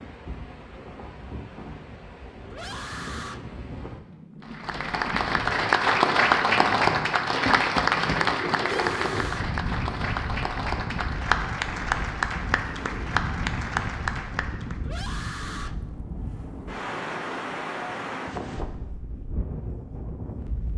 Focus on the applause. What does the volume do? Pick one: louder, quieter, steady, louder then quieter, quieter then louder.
quieter.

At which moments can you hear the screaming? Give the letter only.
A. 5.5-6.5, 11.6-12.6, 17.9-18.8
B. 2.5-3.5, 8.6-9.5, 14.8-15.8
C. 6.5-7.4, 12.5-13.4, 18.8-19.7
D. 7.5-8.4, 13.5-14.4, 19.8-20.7
B.